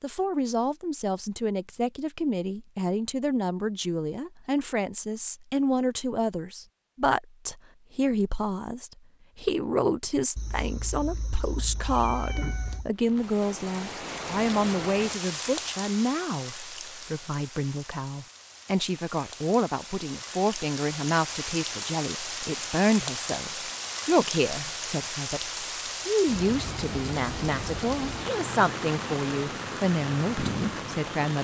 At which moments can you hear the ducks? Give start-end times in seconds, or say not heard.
not heard.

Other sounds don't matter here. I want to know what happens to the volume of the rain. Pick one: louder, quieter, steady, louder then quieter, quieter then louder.
quieter then louder.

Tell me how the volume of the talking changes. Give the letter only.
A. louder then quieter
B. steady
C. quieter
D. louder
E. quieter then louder
B.